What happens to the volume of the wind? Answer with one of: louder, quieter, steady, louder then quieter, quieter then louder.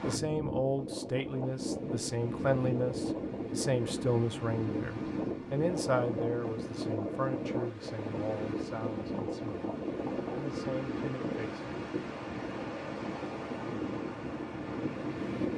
steady.